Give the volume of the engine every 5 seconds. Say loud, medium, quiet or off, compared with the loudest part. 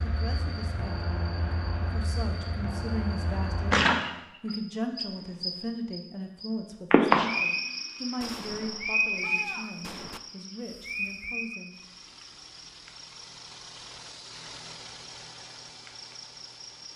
off, off, loud, loud.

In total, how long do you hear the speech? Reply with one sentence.
The speech can be heard for 12 seconds in total.